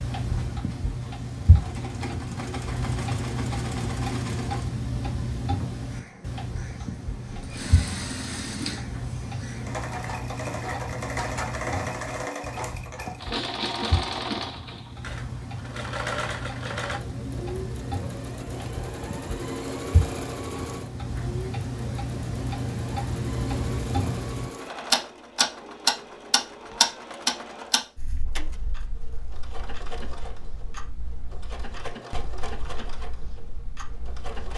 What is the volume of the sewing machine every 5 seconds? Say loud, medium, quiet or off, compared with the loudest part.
medium, medium, loud, loud, medium, medium, medium.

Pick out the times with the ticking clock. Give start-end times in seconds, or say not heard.
0.0-34.5.